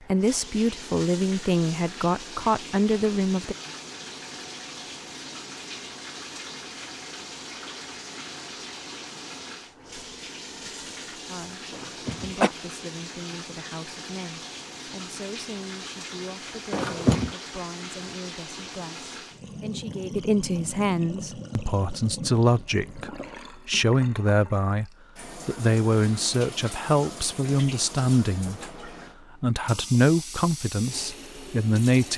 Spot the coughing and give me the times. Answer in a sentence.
You can hear the coughing from 11.7 to 12.5 s and from 16.7 to 17.3 s.